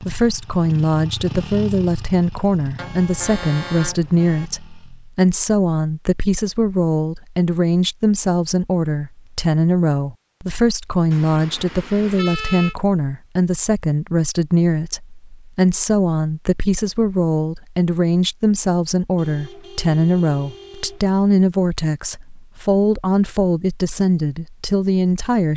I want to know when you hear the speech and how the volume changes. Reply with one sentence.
The speech can be heard from 0.0 to 25.5 s, at a steady volume.